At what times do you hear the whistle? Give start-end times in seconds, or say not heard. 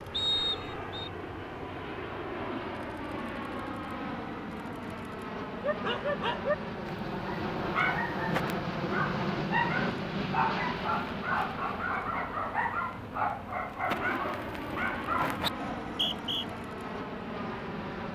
0.1-1.1, 15.8-16.4.